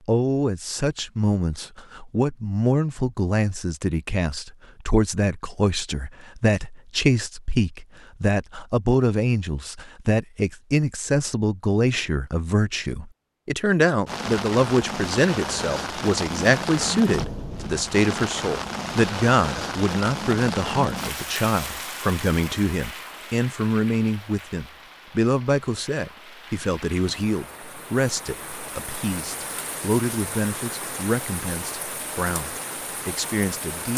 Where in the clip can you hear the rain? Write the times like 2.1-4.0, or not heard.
14.1-33.9.